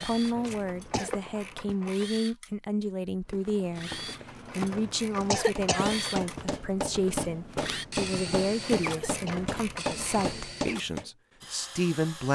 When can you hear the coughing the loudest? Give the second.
5 s.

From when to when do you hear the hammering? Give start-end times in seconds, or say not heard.
5.5-11.1.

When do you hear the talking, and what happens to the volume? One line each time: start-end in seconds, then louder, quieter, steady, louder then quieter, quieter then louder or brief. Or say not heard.
0.0-12.3 steady.